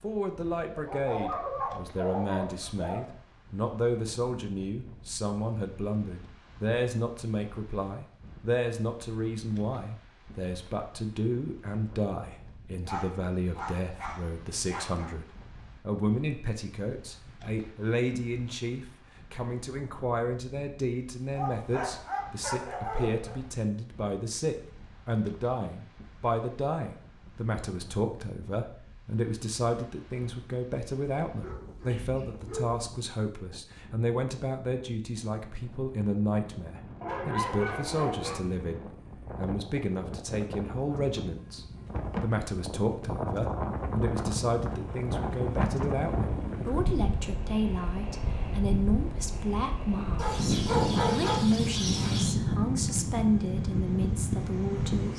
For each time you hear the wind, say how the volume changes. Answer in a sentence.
You can hear the wind from 0.0 to 55.1 s, getting louder.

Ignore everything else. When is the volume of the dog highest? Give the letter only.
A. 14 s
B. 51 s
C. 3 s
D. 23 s
B.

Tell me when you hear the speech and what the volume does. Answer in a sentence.
You can hear the speech from 0.0 to 55.1 s, at a steady volume.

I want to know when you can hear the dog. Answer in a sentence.
The dog can be heard from 0.8 to 3.0 s, from 12.8 to 15.1 s, from 21.3 to 23.4 s, from 31.4 to 32.8 s, from 37.0 to 38.4 s and from 50.1 to 52.4 s.